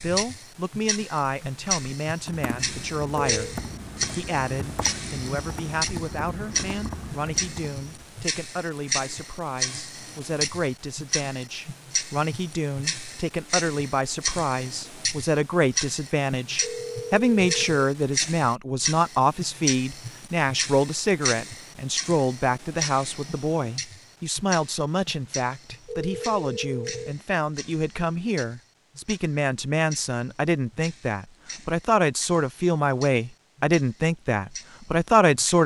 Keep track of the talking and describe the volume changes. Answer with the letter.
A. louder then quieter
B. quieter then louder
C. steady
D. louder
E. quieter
D.